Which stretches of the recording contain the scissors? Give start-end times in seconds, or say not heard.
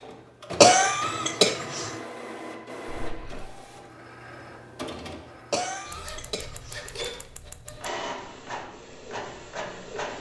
2.9-3.5, 5.9-7.8.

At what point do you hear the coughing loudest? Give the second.
1 s.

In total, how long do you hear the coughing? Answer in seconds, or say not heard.
3 s.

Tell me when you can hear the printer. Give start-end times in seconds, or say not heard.
0.0-10.1.